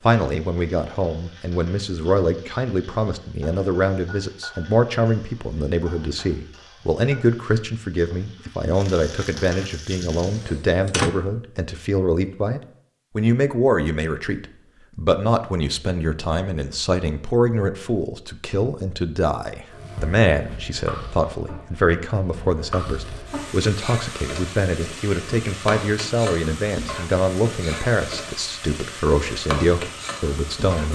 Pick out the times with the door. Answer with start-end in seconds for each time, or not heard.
10.2-11.1.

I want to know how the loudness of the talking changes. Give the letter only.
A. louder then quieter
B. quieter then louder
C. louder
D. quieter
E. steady
E.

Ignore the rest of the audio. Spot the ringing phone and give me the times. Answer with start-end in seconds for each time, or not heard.
not heard.